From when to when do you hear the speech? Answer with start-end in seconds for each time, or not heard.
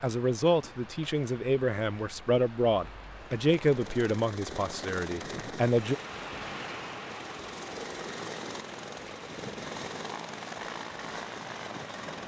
0.0-6.0.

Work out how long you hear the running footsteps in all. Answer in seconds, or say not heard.
not heard.